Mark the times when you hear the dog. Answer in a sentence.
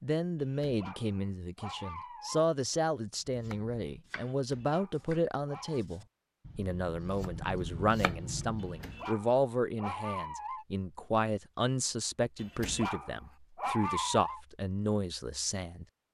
You can hear the dog from 0.4 to 2.5 s, from 4.2 to 5.8 s, from 8.6 to 10.7 s and from 12.3 to 14.4 s.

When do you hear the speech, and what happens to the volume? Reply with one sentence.
You can hear the speech from 0.0 to 15.8 s, at a steady volume.